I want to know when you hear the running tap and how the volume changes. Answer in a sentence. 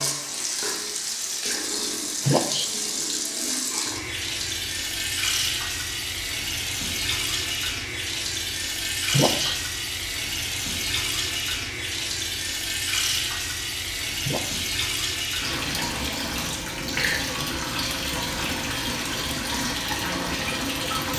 You can hear the running tap from 0.0 to 21.1 s, at a steady volume.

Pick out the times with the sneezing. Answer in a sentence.
You can hear the sneezing from 2.2 to 2.7 s, from 9.1 to 9.6 s and from 14.2 to 14.7 s.